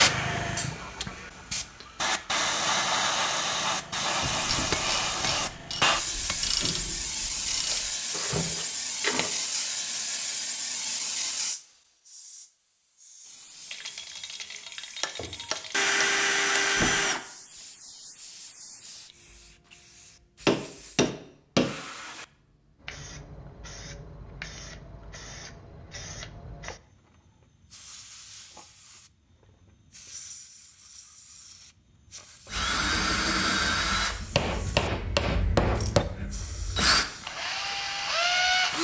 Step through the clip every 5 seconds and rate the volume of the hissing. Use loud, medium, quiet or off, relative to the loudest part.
loud, loud, medium, quiet, quiet, quiet, quiet, quiet.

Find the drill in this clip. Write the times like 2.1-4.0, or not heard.
15.7-17.2, 32.5-38.7.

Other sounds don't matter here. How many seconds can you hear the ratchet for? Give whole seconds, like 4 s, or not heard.
5 s.